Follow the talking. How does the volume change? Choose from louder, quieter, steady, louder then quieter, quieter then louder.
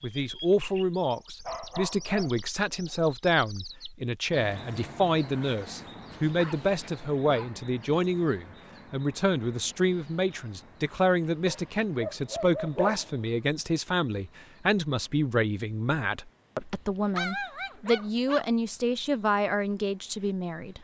steady.